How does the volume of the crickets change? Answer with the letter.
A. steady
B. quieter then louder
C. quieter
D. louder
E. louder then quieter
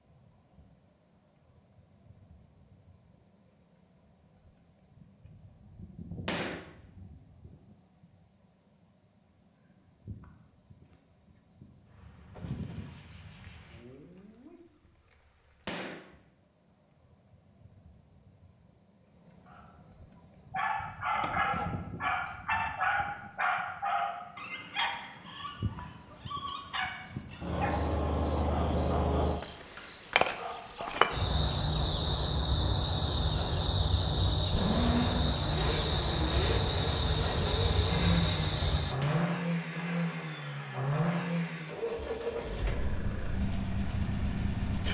D.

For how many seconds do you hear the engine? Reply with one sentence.
The engine can be heard for 10 seconds in total.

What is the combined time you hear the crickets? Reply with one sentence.
You can hear the crickets for 45 seconds altogether.